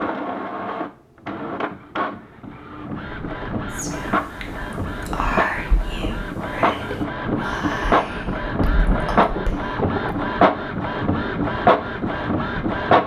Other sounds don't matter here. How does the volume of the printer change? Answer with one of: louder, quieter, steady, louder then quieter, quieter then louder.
louder.